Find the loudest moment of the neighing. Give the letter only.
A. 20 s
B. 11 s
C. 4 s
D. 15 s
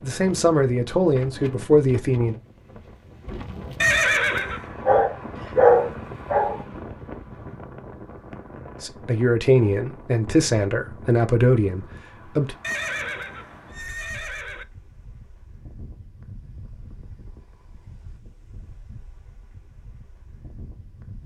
C.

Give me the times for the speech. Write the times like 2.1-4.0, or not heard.
0.0-2.4, 8.8-12.6.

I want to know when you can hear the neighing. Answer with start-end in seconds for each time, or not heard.
3.8-4.7, 12.6-14.7.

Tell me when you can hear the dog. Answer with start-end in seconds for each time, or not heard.
4.8-6.6.